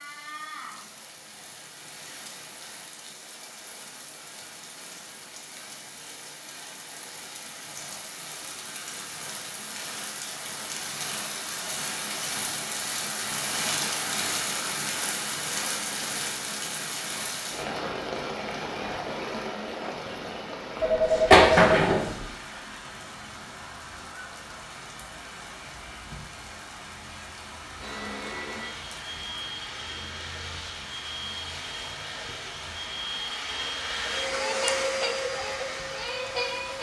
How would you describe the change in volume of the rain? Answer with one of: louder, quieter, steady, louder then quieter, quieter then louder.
louder then quieter.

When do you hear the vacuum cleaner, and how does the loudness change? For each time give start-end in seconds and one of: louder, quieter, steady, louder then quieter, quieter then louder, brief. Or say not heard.
27.8-36.7 louder.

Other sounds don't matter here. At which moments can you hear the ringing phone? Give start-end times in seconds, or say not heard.
20.8-22.2.